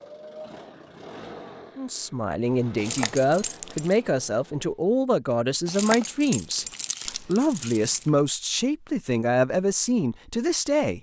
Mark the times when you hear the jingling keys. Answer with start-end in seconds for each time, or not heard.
2.8-4.0, 5.7-8.1.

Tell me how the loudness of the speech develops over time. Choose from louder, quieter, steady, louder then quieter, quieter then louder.
steady.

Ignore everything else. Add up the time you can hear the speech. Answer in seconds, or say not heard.
9 s.